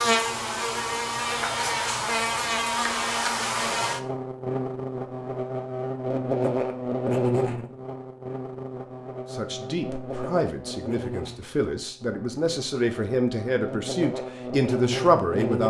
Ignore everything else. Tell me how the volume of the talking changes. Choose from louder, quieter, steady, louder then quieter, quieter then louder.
louder.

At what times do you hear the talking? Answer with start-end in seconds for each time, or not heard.
9.3-15.6.